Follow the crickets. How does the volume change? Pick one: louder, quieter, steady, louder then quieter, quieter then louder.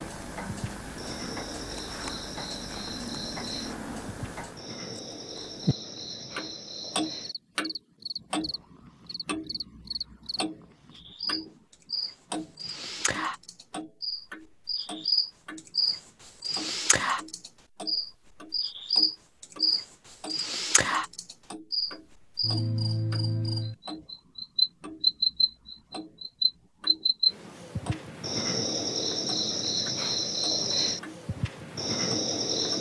louder.